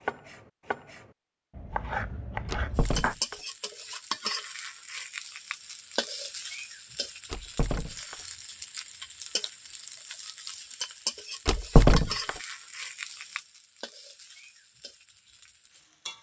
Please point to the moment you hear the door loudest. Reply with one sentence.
The loudest moment of the door is at 12 seconds.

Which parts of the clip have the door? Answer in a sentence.
You can hear the door from 2.5 to 3.4 s, from 7.3 to 8.2 s and from 11.4 to 12.3 s.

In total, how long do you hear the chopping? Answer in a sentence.
You can hear the chopping for 3 seconds altogether.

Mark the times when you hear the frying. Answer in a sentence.
You can hear the frying from 2.8 to 16.1 s.